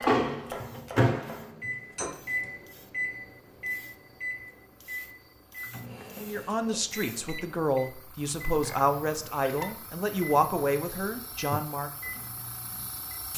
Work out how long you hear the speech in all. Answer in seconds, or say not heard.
6 s.